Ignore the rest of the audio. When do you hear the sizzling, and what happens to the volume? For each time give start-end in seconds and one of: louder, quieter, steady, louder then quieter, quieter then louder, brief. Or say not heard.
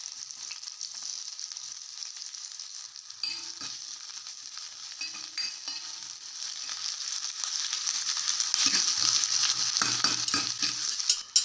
0.0-11.4 louder.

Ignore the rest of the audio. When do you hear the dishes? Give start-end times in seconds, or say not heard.
10.1-11.4.